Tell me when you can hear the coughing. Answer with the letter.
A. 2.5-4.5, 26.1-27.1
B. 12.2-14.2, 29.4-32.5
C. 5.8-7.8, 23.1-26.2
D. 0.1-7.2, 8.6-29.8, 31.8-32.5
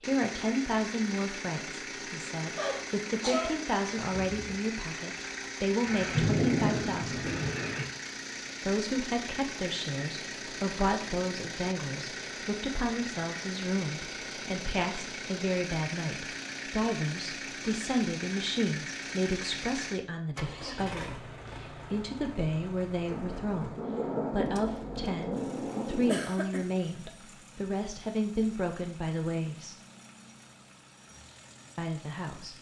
A.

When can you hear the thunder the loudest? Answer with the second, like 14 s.
6 s.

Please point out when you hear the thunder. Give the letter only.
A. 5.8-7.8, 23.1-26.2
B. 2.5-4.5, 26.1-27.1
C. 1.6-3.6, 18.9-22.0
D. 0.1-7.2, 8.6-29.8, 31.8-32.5
A.